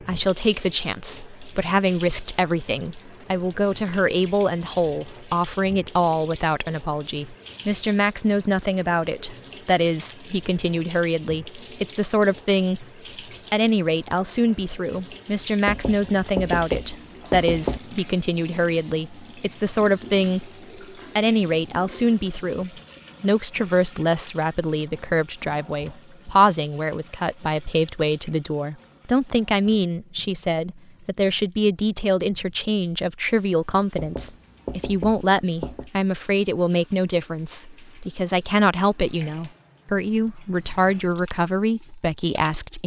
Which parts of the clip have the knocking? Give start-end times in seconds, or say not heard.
15.7-17.8, 34.0-35.9.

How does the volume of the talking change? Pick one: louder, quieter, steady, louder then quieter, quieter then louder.
steady.